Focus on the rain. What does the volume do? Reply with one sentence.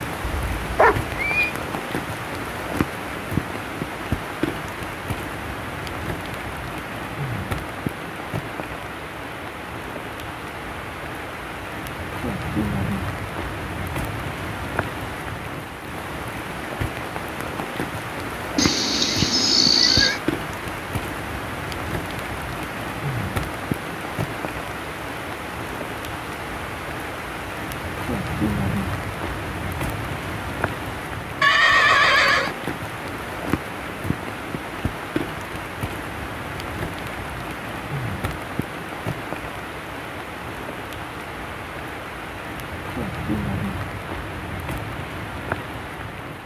The volume of the rain stays about the same.